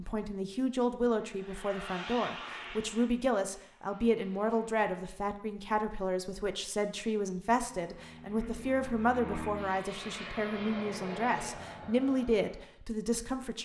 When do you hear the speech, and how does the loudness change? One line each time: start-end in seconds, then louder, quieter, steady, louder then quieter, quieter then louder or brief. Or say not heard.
0.0-13.6 steady.